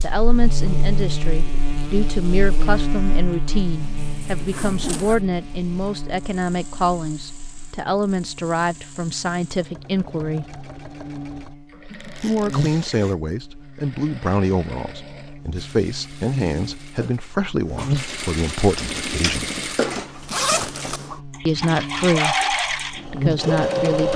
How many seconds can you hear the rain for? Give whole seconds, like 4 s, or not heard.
not heard.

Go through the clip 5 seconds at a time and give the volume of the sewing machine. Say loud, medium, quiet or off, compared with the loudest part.
quiet, quiet, quiet, medium, loud.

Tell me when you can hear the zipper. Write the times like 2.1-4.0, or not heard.
4.0-5.2, 11.9-13.3, 20.2-21.0.